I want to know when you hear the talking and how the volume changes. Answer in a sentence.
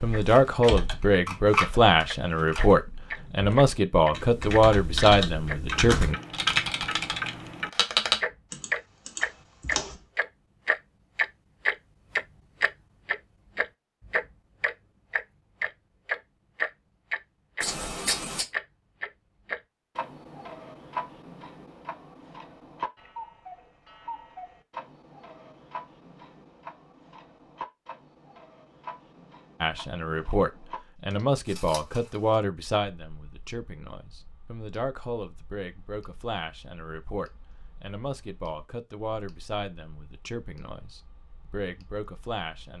You can hear the talking from 0.0 to 6.2 s, at a steady volume; and from 29.6 to 42.7 s, getting quieter.